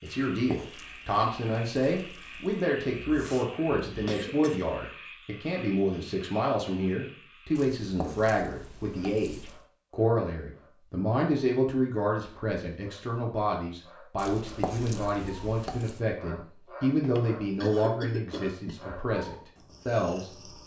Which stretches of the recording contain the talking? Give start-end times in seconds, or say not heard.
0.0-20.6.